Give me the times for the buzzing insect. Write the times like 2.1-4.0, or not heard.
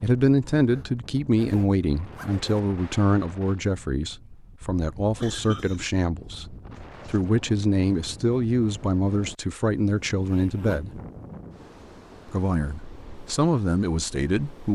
not heard.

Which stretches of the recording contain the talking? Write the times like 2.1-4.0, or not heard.
0.0-11.0, 12.2-14.6.